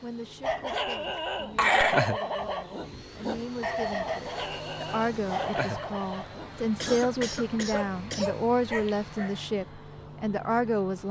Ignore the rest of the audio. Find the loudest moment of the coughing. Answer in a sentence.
The volume of the coughing peaks at 2 seconds.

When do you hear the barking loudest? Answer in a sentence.
The loudest moment of the barking is at 2 seconds.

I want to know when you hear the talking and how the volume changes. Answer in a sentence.
You can hear the talking from 0.0 to 11.0 s, getting louder.